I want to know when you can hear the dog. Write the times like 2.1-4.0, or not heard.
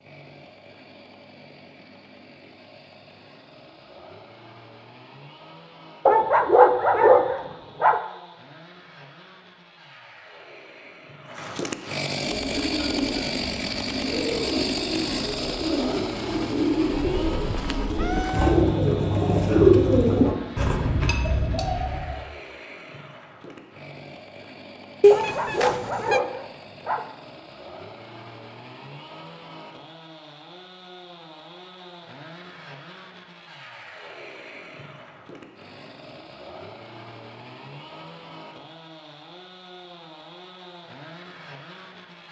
6.0-8.0, 25.1-27.1.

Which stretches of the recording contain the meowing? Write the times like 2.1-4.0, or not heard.
17.4-18.6, 25.0-26.2.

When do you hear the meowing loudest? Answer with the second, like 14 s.
25 s.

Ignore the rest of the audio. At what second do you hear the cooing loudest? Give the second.
20 s.